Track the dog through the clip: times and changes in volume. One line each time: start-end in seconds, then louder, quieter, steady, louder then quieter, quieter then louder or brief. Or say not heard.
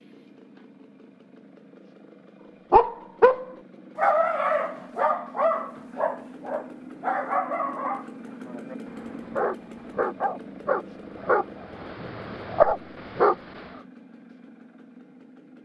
2.7-13.7 quieter then louder.